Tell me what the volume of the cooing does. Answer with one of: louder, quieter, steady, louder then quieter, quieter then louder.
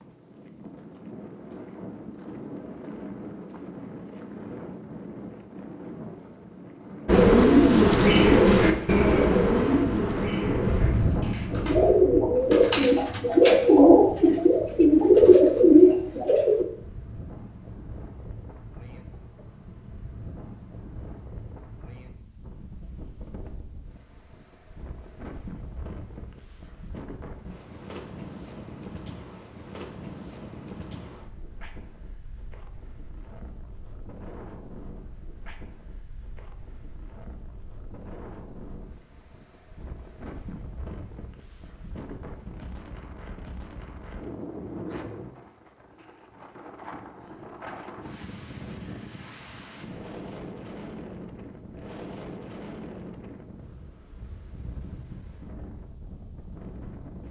quieter then louder.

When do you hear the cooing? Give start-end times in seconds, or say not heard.
7.0-16.6.